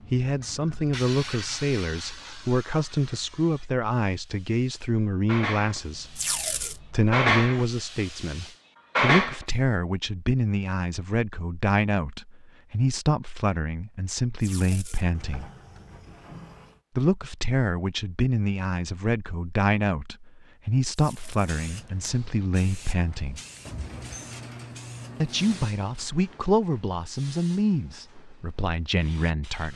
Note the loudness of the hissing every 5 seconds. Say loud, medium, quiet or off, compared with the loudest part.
quiet, loud, off, off, quiet, quiet.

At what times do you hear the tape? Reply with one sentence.
You can hear the tape from 6.2 to 6.8 s, from 14.4 to 15.1 s and from 20.9 to 22.1 s.